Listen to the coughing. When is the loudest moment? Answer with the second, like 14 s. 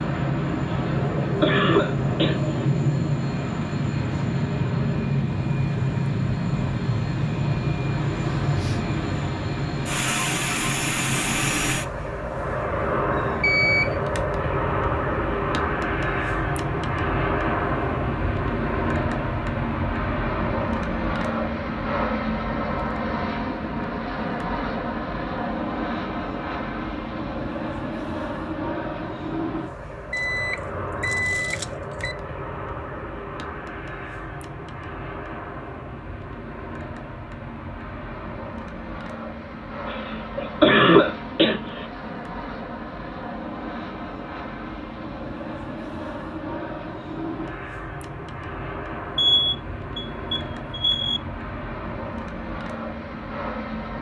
41 s.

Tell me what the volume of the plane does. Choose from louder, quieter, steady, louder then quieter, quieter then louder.
quieter.